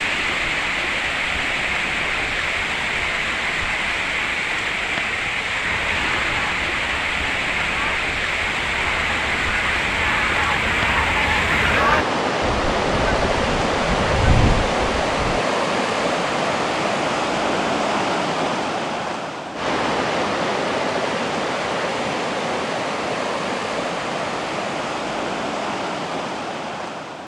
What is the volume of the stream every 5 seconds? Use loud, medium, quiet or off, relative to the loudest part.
loud, loud, loud, loud, loud, medium.